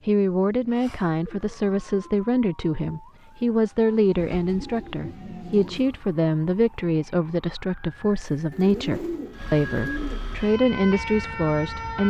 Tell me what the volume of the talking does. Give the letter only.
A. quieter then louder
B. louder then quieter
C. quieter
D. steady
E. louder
D.